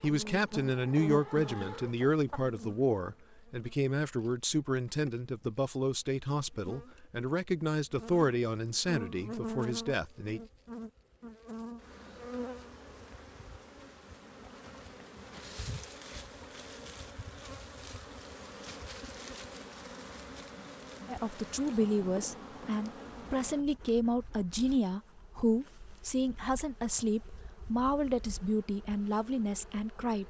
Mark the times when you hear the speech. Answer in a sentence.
The speech can be heard from 0.0 to 10.4 s and from 21.1 to 30.2 s.